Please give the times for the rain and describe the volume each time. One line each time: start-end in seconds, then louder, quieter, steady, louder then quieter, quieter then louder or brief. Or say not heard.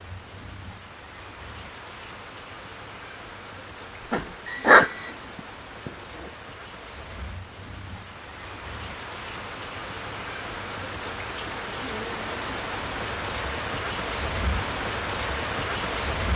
0.0-16.3 louder.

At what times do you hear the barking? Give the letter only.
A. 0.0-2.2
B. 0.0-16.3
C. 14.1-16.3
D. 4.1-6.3
D.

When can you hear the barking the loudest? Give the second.
5 s.